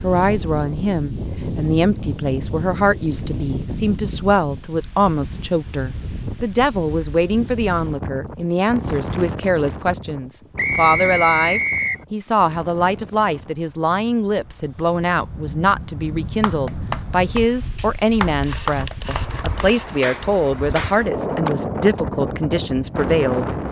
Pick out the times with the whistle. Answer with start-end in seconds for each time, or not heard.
10.6-12.1.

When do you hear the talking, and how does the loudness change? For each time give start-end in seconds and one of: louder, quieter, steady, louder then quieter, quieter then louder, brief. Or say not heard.
0.0-23.5 steady.